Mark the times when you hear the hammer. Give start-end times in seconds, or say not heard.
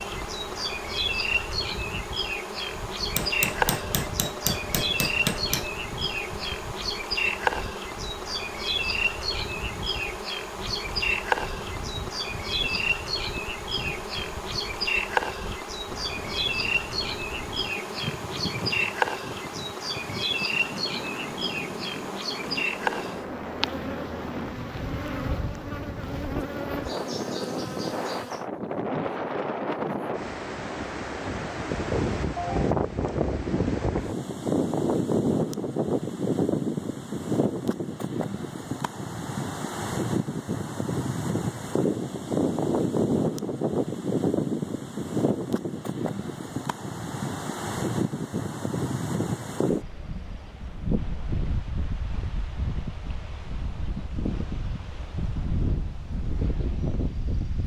3.1-5.8.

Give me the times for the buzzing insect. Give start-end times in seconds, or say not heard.
0.0-28.4.